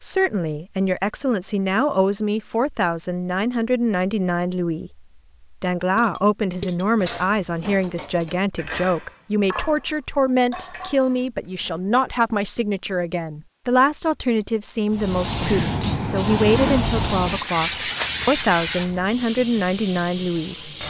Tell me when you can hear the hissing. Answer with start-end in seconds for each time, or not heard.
14.9-20.8.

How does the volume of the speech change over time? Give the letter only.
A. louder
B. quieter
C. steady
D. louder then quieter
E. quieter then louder
C.